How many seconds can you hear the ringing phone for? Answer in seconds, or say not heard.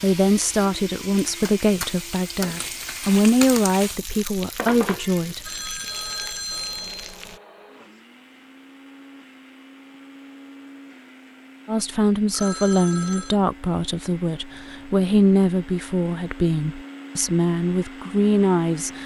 3 s.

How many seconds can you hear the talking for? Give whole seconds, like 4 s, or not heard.
13 s.